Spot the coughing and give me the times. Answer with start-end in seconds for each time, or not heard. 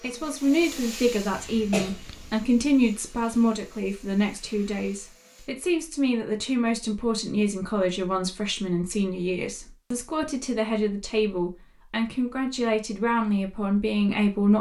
1.3-2.3.